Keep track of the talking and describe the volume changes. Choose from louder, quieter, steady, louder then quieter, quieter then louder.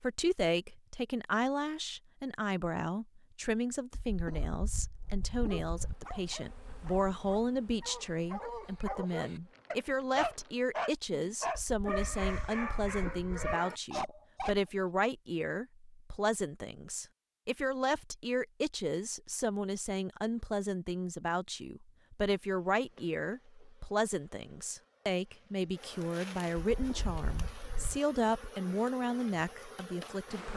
steady.